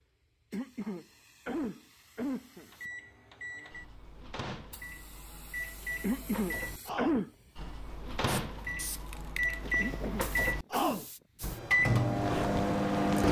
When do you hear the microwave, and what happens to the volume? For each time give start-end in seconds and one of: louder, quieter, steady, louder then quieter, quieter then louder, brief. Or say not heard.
2.6-13.2 louder.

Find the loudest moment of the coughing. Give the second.
7 s.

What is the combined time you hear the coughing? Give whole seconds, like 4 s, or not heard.
5 s.